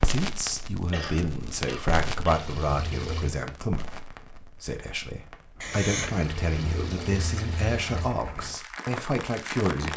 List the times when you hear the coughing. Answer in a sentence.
You can hear the coughing from 0.9 to 2.5 s and from 5.6 to 6.2 s.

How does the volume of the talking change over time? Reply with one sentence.
The loudness of the talking stays about the same.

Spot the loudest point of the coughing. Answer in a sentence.
The loudest moment of the coughing is at 6 seconds.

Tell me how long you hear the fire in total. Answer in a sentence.
The fire can be heard for 10 seconds in total.